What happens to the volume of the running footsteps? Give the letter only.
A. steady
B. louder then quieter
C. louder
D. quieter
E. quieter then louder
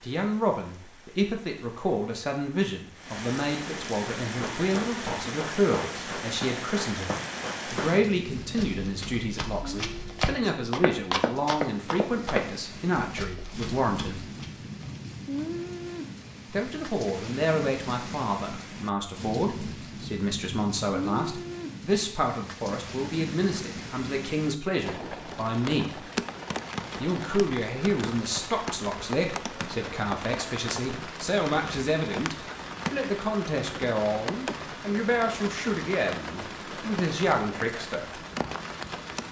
B.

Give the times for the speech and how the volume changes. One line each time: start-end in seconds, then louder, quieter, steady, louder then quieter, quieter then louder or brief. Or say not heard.
0.0-14.2 steady
16.5-26.1 steady
27.0-38.2 steady.